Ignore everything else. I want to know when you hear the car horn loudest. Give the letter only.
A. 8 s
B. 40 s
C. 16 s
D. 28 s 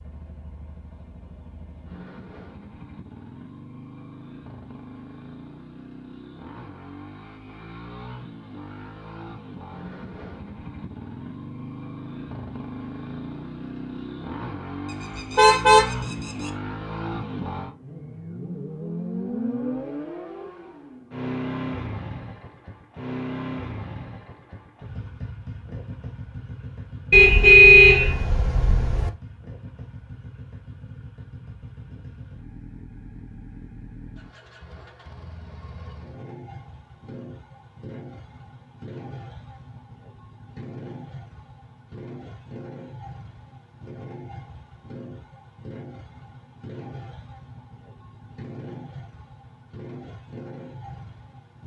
D.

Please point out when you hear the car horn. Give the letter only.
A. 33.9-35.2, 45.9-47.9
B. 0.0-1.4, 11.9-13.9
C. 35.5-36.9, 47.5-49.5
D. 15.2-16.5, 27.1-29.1
D.